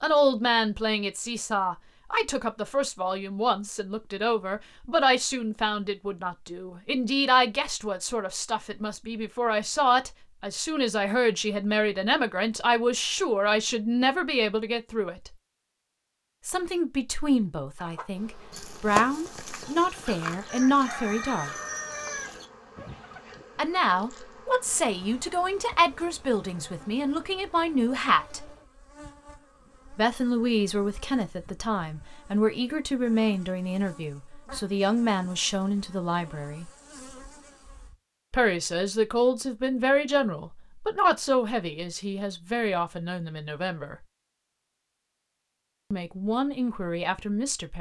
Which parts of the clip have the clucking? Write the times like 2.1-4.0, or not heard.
17.8-23.4.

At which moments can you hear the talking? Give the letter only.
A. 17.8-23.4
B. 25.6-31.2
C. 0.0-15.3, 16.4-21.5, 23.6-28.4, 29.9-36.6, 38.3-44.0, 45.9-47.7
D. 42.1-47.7
C.